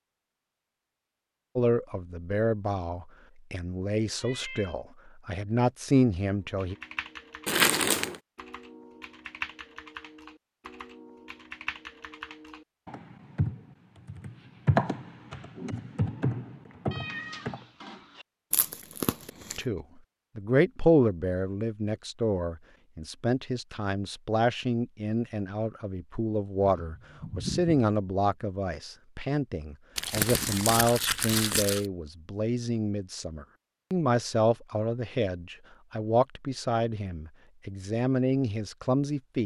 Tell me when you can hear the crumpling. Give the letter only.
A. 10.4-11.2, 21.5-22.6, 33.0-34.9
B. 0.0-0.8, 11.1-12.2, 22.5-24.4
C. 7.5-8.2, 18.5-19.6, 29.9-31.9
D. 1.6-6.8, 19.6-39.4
C.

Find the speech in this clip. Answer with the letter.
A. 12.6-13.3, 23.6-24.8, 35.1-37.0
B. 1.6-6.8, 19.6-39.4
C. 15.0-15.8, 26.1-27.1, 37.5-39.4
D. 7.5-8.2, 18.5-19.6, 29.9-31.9
B.